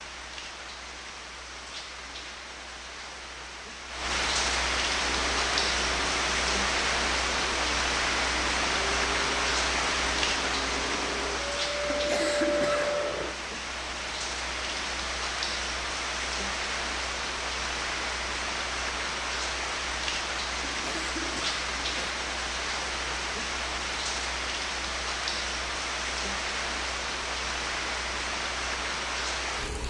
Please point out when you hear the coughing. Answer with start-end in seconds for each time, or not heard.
11.8-13.1, 20.6-22.1.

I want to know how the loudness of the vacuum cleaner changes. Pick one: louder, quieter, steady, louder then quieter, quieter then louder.
louder.